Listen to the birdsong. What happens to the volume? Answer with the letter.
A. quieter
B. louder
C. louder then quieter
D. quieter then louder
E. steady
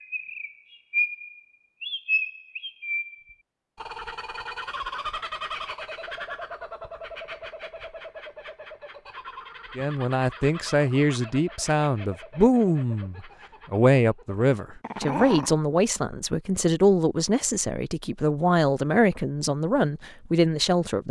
A.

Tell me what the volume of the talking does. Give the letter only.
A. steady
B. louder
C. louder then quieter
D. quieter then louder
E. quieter
A.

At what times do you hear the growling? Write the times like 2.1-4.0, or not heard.
14.8-15.6.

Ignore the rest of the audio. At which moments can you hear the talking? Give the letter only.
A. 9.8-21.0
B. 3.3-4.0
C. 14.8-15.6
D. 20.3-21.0
A.